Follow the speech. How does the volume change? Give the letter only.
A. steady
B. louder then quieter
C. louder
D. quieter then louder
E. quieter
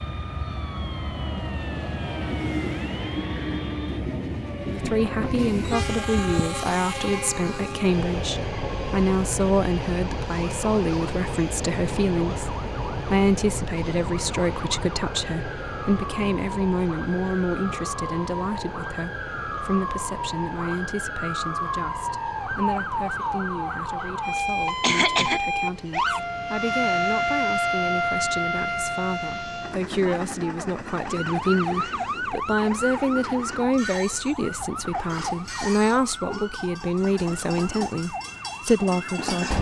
D.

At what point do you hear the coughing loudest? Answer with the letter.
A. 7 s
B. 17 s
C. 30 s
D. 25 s
D.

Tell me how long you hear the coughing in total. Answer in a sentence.
You can hear the coughing for 2 seconds altogether.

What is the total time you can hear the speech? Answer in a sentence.
The speech can be heard for 35 seconds in total.